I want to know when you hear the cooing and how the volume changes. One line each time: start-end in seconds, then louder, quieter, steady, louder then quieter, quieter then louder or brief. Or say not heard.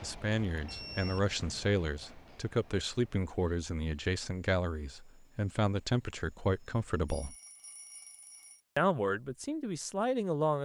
not heard.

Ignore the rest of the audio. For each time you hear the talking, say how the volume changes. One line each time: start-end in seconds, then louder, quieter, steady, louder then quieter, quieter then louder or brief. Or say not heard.
0.0-7.3 steady
8.8-10.5 brief.